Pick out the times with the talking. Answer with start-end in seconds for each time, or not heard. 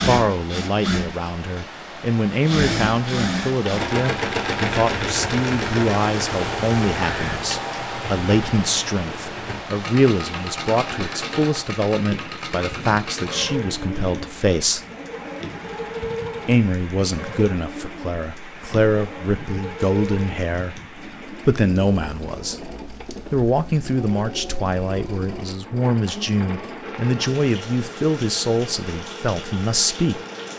0.0-14.8, 16.4-22.6, 23.3-30.2.